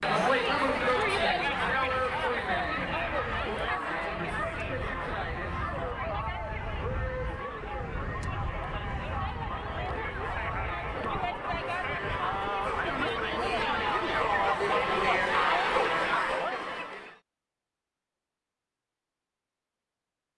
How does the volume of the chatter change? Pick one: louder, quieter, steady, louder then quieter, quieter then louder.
quieter then louder.